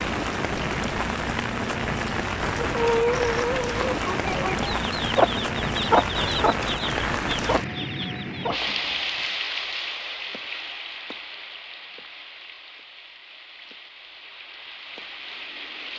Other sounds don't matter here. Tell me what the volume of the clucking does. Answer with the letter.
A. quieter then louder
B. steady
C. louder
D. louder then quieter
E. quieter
E.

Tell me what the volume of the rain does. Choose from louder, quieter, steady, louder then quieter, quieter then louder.
quieter.